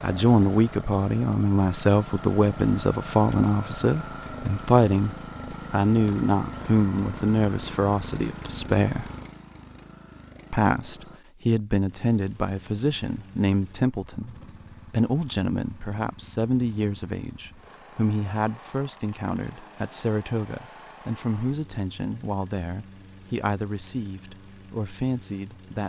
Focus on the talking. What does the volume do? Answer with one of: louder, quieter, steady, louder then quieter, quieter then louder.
quieter.